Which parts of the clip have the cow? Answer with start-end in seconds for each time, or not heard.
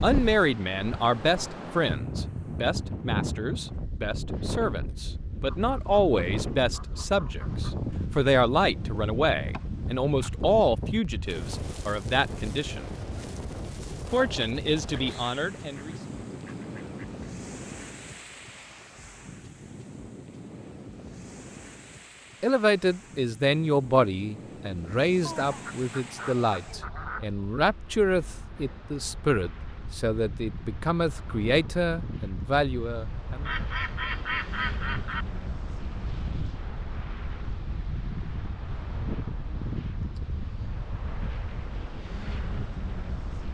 not heard.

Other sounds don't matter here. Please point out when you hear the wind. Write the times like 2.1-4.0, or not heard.
0.0-43.4.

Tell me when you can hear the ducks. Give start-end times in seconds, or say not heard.
5.5-7.8, 14.8-17.4, 25.2-27.2, 33.5-35.2.